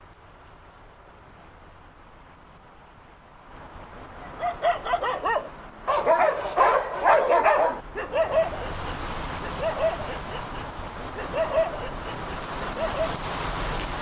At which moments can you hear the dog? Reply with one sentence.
The dog can be heard from 4.4 to 13.2 s.